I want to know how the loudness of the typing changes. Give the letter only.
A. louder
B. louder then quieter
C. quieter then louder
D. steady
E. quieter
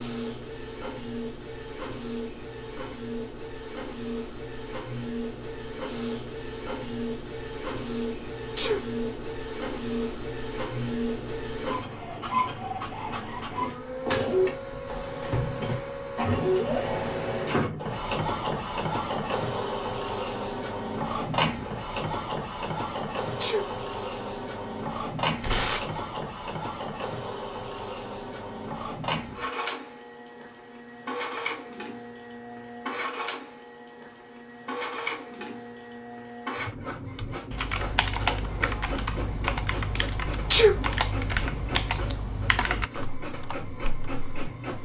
E.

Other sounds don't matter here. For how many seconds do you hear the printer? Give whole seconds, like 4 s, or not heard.
45 s.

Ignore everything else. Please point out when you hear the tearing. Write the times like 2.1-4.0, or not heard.
25.4-26.0.